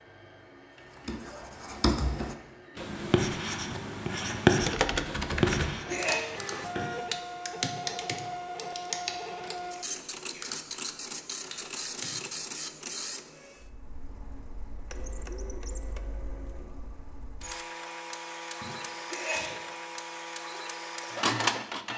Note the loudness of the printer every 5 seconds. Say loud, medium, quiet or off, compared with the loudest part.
quiet, medium, medium, medium, loud.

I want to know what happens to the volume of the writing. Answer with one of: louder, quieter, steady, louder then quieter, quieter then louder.
louder then quieter.